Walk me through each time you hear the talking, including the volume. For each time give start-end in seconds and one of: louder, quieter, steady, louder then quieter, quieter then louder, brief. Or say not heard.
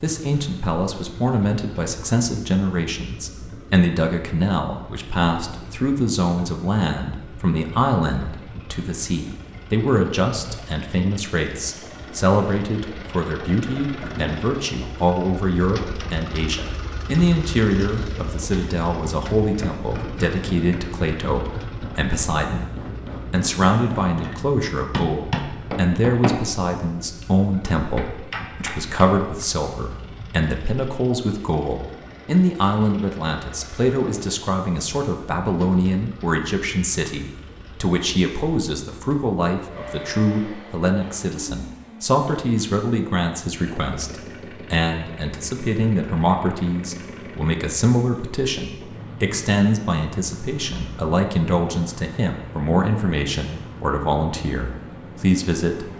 0.0-22.7 steady
23.3-55.9 steady.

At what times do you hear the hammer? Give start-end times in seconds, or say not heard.
19.4-29.4.